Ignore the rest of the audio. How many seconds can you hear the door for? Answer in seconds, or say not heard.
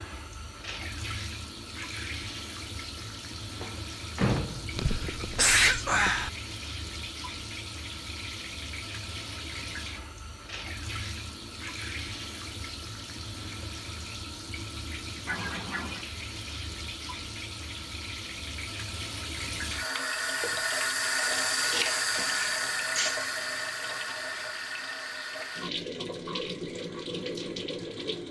2 s.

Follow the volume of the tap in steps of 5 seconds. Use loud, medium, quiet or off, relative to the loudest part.
medium, medium, medium, medium, loud, medium.